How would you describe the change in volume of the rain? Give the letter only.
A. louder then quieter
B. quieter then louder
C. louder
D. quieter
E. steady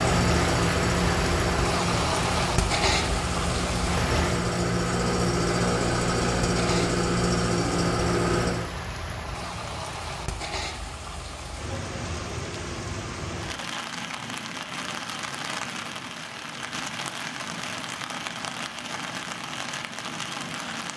D.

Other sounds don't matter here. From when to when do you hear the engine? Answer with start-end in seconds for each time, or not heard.
0.0-8.7.